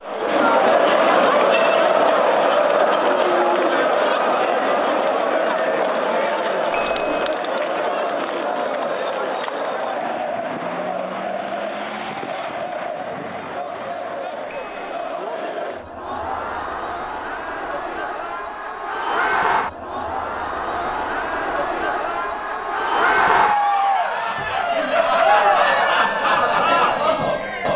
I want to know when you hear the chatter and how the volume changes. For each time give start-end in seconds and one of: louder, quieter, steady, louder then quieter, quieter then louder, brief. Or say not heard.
0.0-27.7 quieter then louder.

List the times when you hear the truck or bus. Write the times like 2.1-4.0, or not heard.
not heard.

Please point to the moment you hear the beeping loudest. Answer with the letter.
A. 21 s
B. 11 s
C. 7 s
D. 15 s
C.